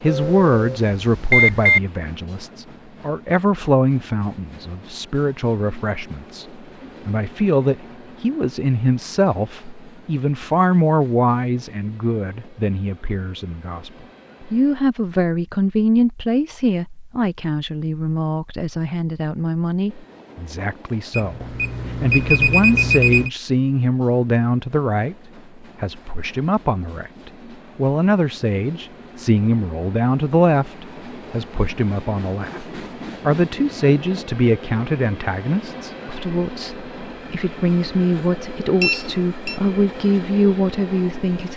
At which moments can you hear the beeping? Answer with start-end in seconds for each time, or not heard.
0.1-1.8, 21.1-23.3, 38.8-39.6.